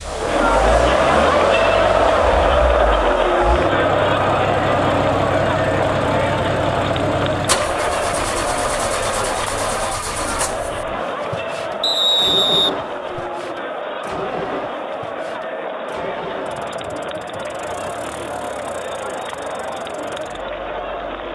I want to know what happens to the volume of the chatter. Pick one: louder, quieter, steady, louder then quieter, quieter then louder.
quieter.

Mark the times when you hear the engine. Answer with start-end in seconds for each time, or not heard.
0.0-21.2.